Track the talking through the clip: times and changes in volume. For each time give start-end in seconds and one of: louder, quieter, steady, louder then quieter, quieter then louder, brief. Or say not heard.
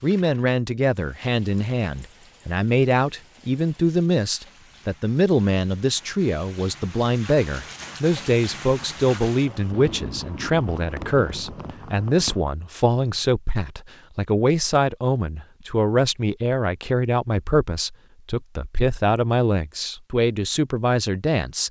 0.0-21.6 steady.